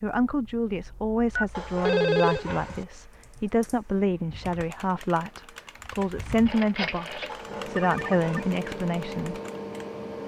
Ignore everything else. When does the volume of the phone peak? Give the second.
2 s.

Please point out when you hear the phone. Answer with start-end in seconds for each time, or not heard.
1.4-2.5, 6.5-8.4.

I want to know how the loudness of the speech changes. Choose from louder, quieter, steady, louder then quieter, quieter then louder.
steady.